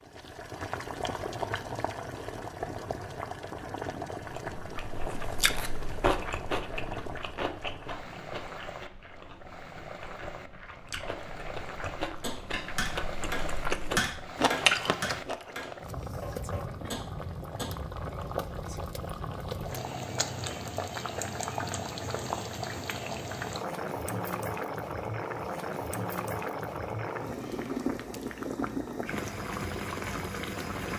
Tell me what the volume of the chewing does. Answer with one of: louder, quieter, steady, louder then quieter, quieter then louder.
quieter then louder.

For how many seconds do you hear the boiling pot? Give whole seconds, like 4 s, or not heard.
31 s.